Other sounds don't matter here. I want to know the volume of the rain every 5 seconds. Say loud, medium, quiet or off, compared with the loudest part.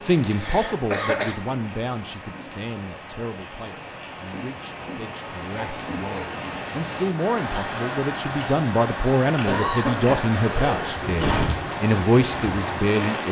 medium, loud, loud.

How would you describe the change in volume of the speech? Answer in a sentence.
The volume of the speech goes down, then up.